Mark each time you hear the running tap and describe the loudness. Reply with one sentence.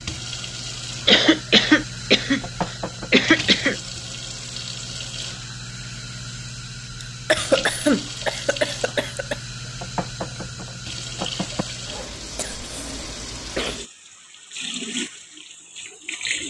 The running tap can be heard from 0.0 to 16.4 s, at a steady volume.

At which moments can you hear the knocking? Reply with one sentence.
The knocking can be heard from 2.2 to 3.4 s and from 9.6 to 11.7 s.